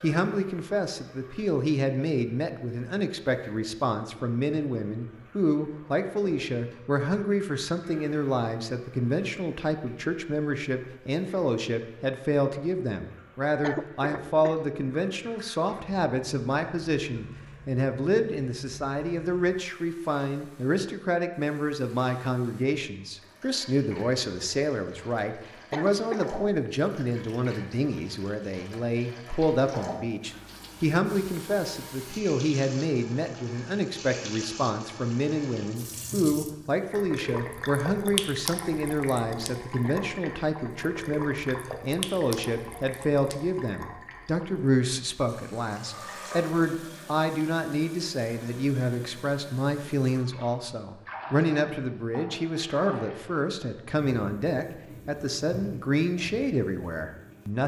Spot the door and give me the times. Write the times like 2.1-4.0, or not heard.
not heard.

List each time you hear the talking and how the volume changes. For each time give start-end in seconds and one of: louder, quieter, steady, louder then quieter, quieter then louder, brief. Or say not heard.
0.0-57.6 steady.